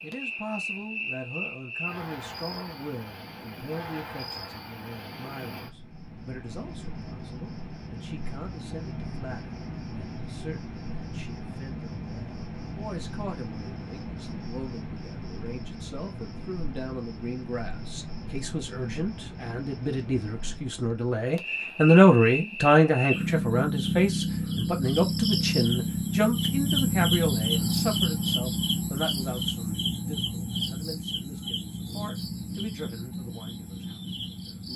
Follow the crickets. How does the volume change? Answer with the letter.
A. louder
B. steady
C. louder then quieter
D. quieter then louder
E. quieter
A.